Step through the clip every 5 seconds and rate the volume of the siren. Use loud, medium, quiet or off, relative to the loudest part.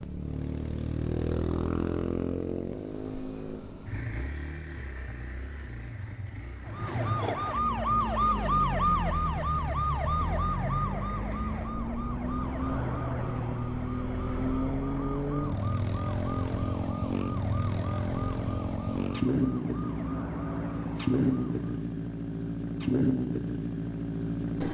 off, loud, medium, quiet, quiet.